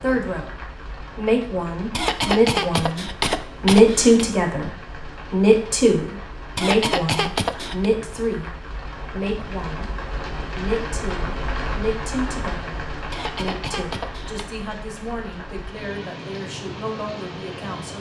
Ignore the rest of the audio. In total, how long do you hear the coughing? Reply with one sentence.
You can hear the coughing for 5 seconds altogether.